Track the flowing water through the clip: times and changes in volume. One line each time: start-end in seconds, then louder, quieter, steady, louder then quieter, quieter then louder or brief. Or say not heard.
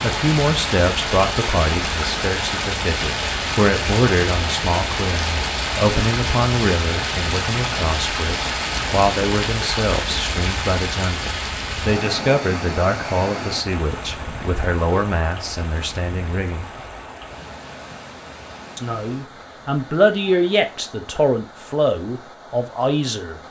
0.0-23.4 quieter.